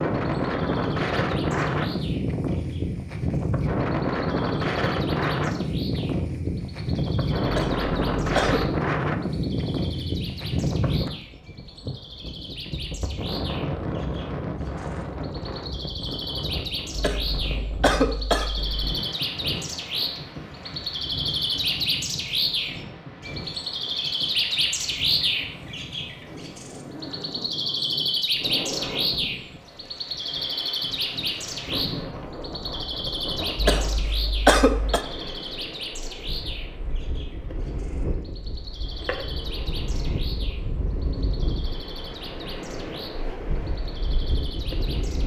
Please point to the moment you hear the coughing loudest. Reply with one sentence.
The volume of the coughing peaks at 35 seconds.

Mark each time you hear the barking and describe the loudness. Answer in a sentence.
The barking can't be heard in this clip.